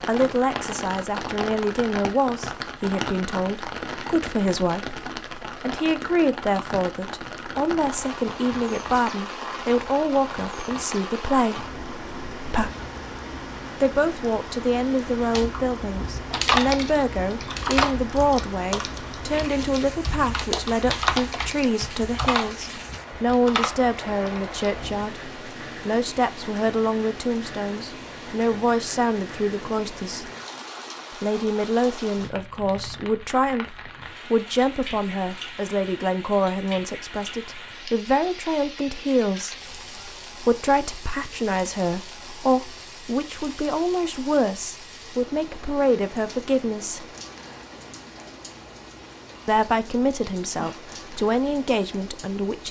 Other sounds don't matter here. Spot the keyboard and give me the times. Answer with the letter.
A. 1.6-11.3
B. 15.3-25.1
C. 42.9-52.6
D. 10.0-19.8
B.